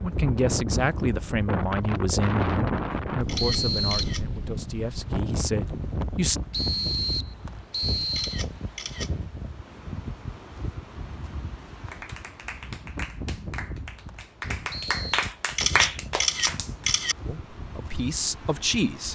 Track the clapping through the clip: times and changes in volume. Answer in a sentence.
You can hear the clapping from 11.9 to 16.9 s, getting louder.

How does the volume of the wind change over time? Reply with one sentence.
The loudness of the wind goes down.